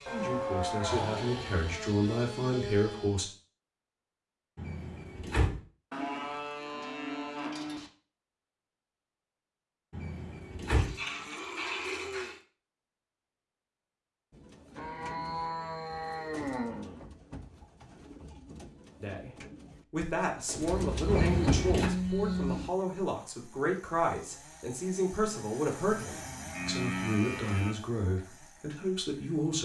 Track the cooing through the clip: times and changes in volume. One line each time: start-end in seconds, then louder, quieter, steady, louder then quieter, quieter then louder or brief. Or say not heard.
14.3-21.6 louder.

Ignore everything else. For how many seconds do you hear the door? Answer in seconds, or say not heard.
3 s.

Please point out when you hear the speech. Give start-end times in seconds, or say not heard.
0.0-3.2, 19.0-29.5.